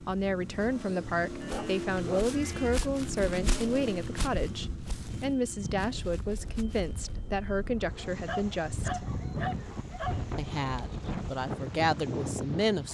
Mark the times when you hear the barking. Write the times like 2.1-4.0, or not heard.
1.4-2.9, 8.1-10.3.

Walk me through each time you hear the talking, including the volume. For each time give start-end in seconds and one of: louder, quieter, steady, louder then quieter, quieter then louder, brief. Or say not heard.
0.0-9.1 steady
10.3-12.8 brief.